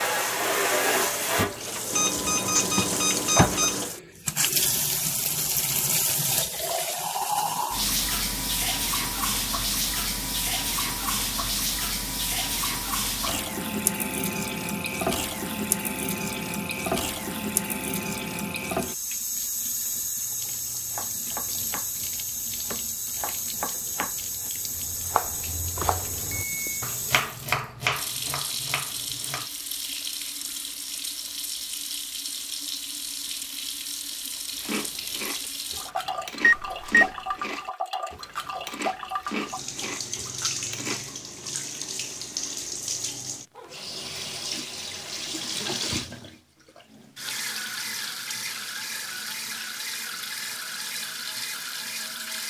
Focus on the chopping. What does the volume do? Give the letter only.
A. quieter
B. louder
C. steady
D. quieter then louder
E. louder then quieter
B.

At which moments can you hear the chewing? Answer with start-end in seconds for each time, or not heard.
34.5-41.2.